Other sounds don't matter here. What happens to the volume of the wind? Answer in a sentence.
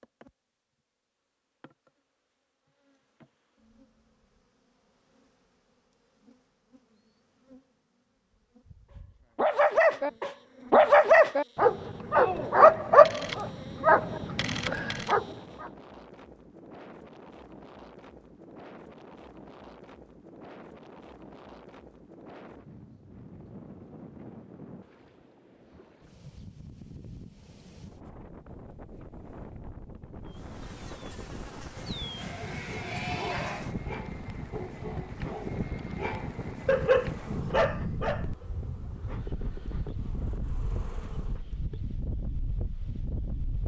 The loudness of the wind goes up.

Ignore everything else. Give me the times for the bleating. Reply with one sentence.
You can hear the bleating from 32.1 to 33.7 s.